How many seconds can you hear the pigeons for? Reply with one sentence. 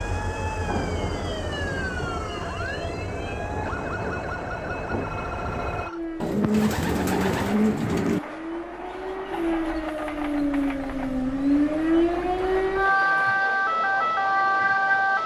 The pigeons can be heard for 2 seconds in total.